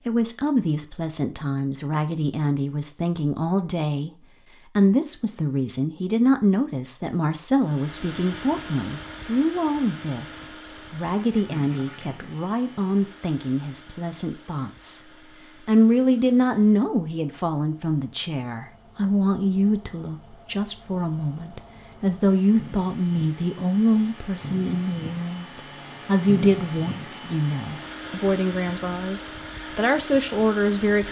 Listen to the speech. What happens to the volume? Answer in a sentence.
The volume of the speech stays about the same.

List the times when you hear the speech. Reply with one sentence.
The speech can be heard from 0.1 to 4.1 s and from 4.8 to 31.0 s.